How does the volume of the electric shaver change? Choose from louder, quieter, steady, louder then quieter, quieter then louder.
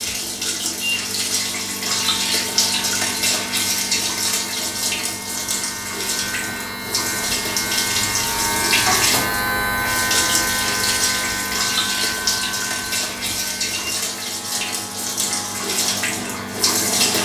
louder then quieter.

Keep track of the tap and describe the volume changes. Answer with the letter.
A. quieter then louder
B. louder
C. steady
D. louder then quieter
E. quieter
C.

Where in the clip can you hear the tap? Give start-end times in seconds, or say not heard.
0.0-17.1.